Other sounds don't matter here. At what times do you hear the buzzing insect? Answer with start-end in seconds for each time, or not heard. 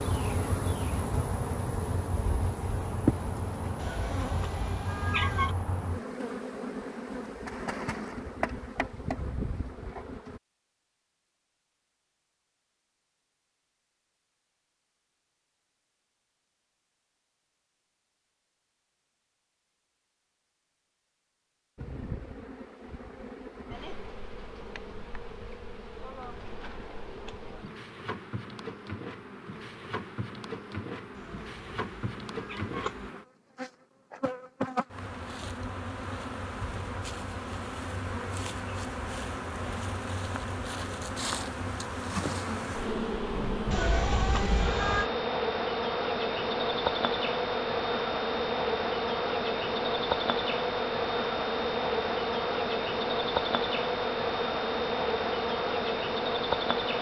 0.0-10.4, 21.8-56.9.